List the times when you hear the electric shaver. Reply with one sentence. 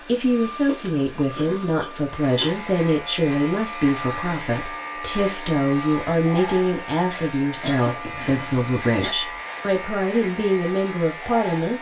The electric shaver can be heard from 1.9 to 11.7 s.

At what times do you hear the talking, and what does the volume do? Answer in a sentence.
You can hear the talking from 0.1 to 11.7 s, at a steady volume.